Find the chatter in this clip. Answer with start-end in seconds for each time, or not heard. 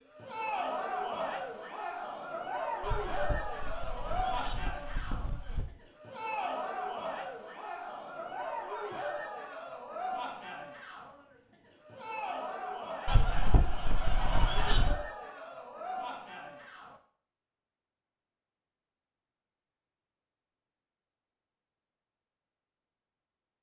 0.1-17.0.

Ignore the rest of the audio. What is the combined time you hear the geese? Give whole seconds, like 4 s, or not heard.
5 s.